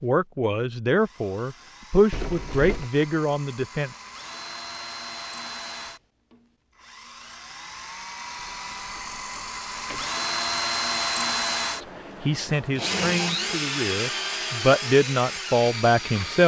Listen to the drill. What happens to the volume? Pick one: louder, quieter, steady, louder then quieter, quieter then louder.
louder.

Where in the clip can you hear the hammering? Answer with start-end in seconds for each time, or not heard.
not heard.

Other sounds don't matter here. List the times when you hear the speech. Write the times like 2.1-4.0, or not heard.
0.0-4.0, 11.8-16.4.